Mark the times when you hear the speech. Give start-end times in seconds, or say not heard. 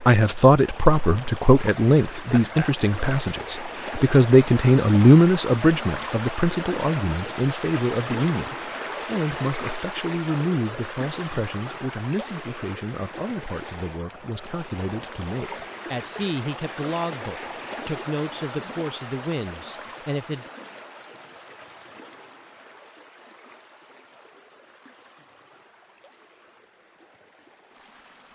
0.0-20.4.